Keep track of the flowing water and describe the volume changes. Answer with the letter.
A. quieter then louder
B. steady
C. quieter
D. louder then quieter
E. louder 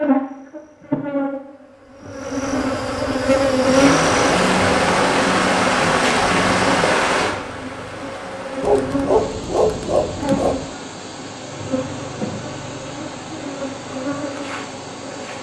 C.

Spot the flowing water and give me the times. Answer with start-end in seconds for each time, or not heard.
3.5-15.3.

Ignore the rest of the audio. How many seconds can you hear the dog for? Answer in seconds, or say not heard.
2 s.